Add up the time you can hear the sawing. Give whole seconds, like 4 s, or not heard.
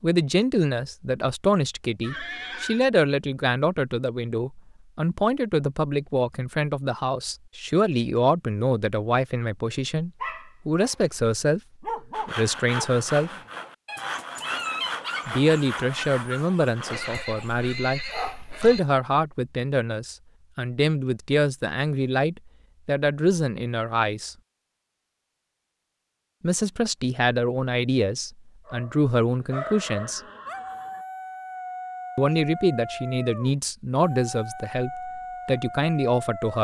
5 s.